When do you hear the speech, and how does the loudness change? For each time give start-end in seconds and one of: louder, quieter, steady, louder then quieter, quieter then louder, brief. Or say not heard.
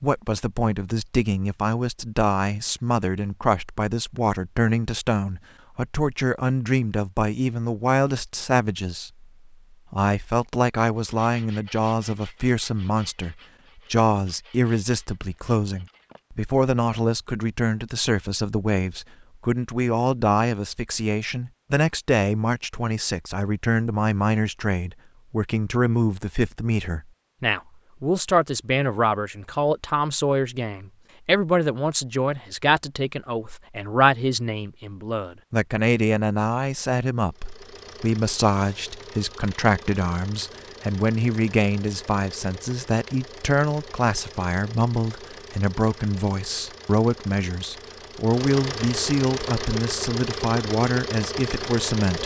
0.0-9.2 steady
9.9-52.2 steady.